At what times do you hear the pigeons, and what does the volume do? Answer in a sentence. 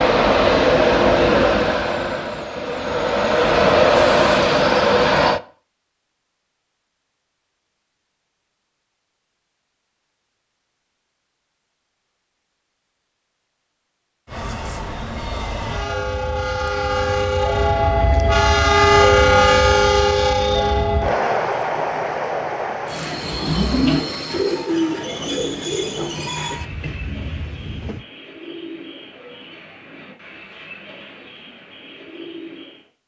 The pigeons can be heard from 23.2 to 32.9 s, getting quieter.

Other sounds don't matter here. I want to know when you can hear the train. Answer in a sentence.
The train can be heard from 0.0 to 5.4 s and from 14.2 to 28.1 s.